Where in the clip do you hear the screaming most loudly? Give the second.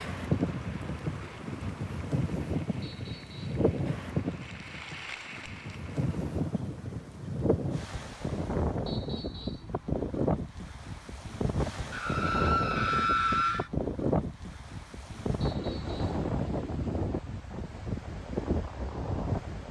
13 s.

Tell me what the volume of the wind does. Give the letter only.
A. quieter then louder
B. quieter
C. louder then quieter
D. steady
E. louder
D.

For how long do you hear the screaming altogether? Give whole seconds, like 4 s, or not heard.
2 s.